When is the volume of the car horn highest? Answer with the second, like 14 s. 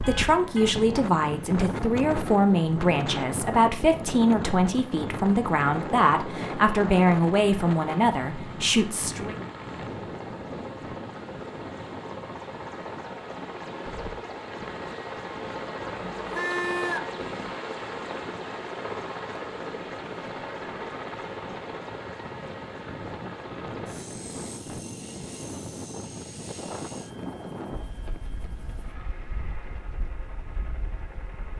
17 s.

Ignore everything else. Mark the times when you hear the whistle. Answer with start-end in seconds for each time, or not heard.
not heard.